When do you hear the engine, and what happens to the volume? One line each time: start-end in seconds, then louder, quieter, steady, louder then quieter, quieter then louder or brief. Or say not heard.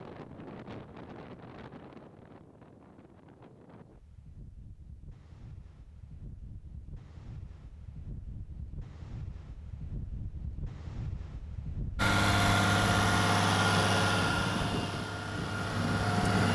11.9-16.4 quieter.